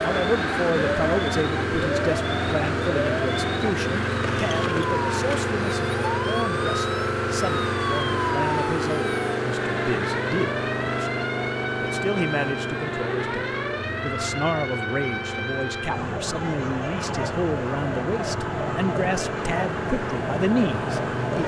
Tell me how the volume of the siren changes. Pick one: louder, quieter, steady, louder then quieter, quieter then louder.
steady.